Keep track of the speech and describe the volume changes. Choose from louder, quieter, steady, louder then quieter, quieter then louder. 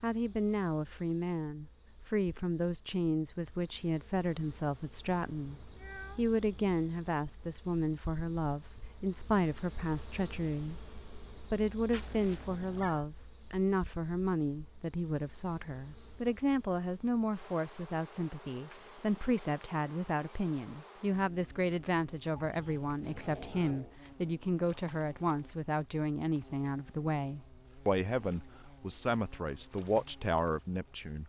steady.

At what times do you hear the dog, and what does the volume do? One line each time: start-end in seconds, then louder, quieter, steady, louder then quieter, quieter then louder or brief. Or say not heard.
not heard.